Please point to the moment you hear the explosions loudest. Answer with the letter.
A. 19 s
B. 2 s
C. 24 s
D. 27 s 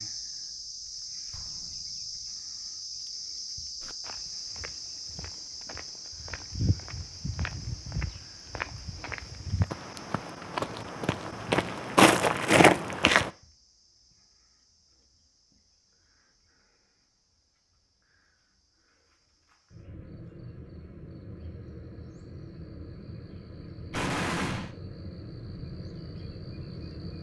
C.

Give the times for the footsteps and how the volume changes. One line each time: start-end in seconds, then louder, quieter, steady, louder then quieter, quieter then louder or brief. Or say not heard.
3.8-13.3 louder.